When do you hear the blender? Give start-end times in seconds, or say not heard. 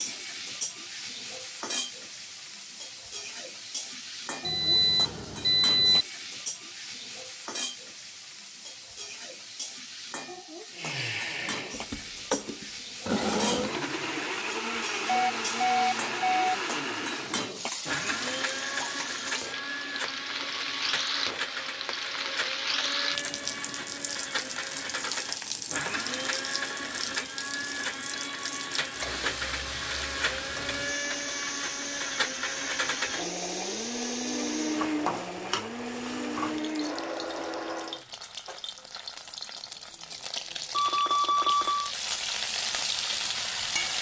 10.7-38.0.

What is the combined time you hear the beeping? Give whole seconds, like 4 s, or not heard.
4 s.